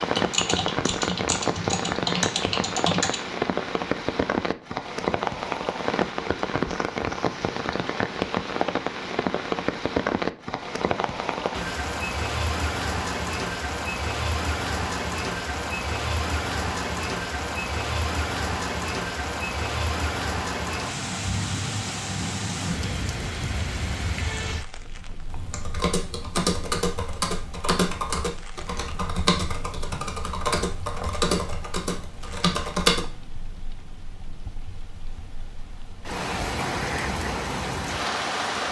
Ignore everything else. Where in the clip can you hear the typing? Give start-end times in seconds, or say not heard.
0.0-3.2, 25.3-33.0.